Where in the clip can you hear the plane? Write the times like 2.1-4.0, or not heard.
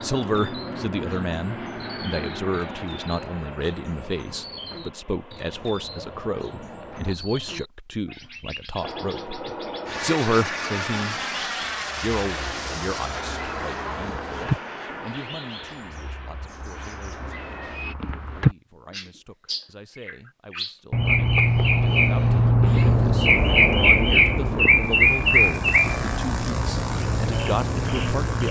0.0-7.2, 8.8-17.9, 22.7-28.4.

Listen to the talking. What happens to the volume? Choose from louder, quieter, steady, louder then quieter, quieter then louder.
quieter then louder.